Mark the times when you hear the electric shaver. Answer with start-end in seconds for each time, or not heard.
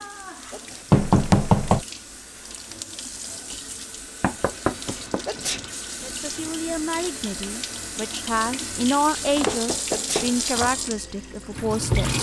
not heard.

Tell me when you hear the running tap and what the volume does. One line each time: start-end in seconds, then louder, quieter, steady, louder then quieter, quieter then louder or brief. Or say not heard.
0.0-12.1 louder.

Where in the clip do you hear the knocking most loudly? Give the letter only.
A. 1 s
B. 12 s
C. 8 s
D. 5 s
A.